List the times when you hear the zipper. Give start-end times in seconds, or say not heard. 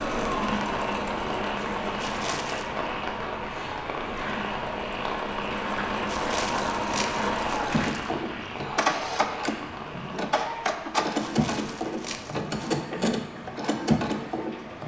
not heard.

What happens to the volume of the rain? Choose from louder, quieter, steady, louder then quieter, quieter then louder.
quieter.